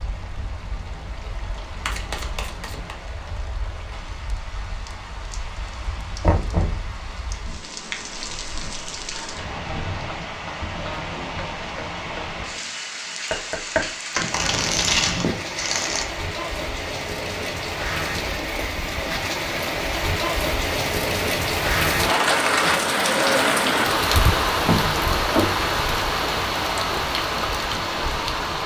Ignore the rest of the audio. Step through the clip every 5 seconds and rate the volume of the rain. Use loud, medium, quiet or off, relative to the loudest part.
quiet, quiet, medium, medium, loud, loud.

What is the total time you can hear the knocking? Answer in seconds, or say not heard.
2 s.